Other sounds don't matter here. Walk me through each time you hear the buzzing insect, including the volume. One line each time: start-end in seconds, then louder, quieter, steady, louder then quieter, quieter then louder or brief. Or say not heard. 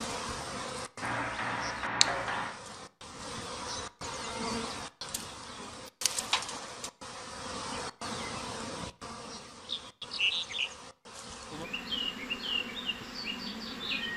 0.0-14.1 steady.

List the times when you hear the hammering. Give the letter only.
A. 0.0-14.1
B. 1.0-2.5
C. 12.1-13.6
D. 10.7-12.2
B.